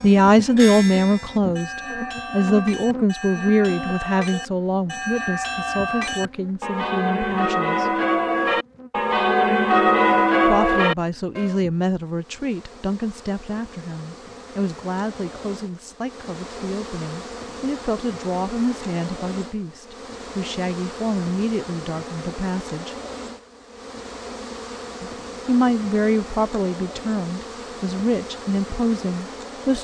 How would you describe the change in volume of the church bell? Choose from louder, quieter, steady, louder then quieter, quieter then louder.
louder.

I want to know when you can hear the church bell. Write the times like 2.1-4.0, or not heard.
0.0-11.6.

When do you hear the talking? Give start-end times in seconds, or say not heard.
0.0-7.9, 10.4-22.9, 25.0-29.7.